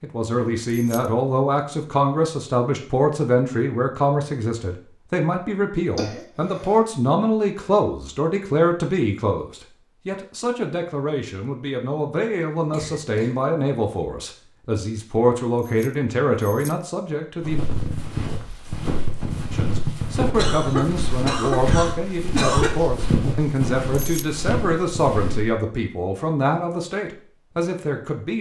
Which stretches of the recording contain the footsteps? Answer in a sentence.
The footsteps can be heard from 17.4 to 25.6 s.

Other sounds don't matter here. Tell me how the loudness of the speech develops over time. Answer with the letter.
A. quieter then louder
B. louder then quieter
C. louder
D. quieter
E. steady
E.